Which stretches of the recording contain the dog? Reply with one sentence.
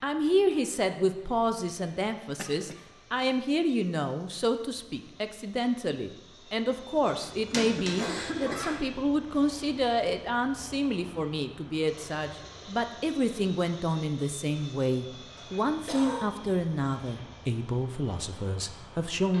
The dog can be heard from 6.7 to 8.8 s.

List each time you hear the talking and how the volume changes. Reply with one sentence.
You can hear the talking from 0.0 to 19.3 s, at a steady volume.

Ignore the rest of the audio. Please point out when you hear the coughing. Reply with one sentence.
You can hear the coughing from 2.2 to 3.4 s, from 7.8 to 9.1 s and from 15.3 to 16.3 s.